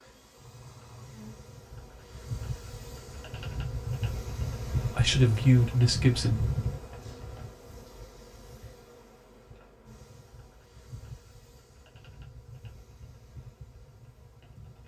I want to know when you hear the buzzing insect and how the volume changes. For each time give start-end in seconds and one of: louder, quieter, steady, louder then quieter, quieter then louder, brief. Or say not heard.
0.0-14.8 louder then quieter.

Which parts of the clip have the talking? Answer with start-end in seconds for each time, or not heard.
4.9-6.4.